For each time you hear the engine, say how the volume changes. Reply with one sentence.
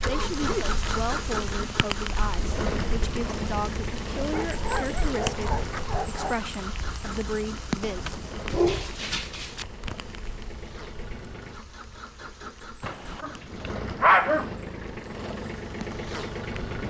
The engine can be heard from 0.0 to 16.8 s, getting quieter then louder.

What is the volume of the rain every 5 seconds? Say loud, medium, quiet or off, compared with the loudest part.
loud, loud, quiet, medium.